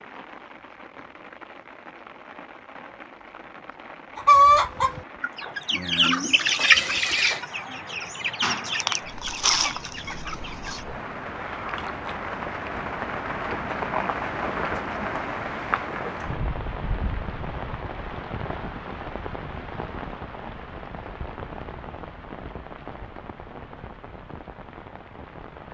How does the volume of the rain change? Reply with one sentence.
The volume of the rain goes up, then down.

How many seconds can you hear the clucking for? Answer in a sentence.
The clucking can be heard for 7 seconds in total.